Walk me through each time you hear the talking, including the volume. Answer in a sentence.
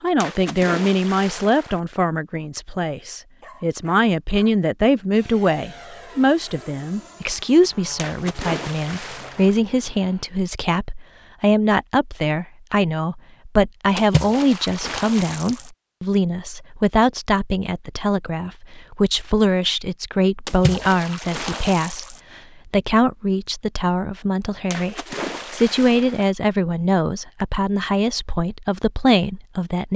The talking can be heard from 0.0 to 29.9 s, at a steady volume.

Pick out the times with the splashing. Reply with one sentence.
You can hear the splashing from 0.2 to 1.8 s, from 8.0 to 9.6 s, from 13.9 to 15.7 s, from 20.4 to 22.2 s and from 24.7 to 26.3 s.